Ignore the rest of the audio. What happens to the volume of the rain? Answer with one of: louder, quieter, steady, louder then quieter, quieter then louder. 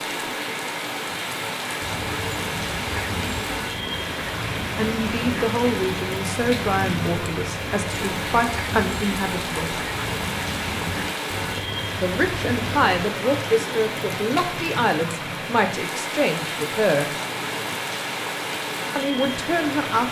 steady.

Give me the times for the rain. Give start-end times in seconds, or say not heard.
0.0-20.0.